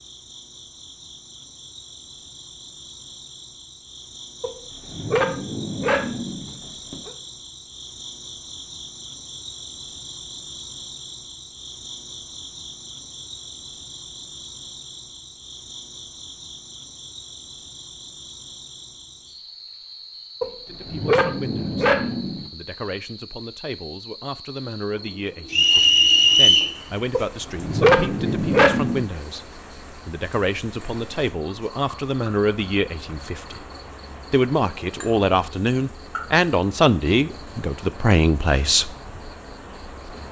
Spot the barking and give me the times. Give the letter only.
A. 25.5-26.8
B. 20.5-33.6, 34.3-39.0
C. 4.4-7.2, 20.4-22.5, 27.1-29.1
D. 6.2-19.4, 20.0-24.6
C.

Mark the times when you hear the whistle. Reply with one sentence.
You can hear the whistle from 25.5 to 26.8 s.